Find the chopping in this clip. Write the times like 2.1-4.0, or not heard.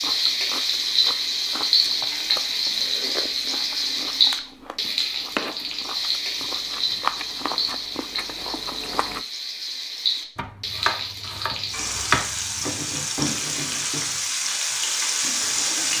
10.3-12.7.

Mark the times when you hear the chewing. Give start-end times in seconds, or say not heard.
0.0-9.2.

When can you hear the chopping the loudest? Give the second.
12 s.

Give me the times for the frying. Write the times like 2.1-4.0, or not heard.
0.0-15.9.